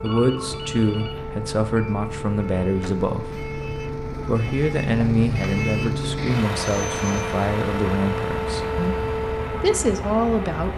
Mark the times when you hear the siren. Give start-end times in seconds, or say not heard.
0.0-10.7.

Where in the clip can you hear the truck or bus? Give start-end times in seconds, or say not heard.
0.0-10.7.